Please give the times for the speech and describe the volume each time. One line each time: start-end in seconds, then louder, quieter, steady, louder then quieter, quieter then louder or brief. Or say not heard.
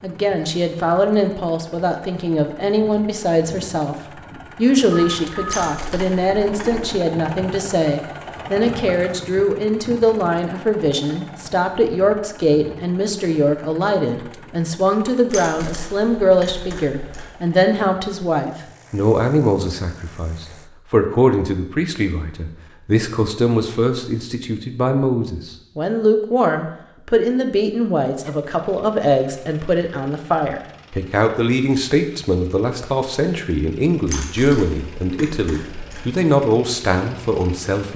0.0-37.9 steady.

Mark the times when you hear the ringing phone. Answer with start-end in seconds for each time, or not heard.
4.9-5.7.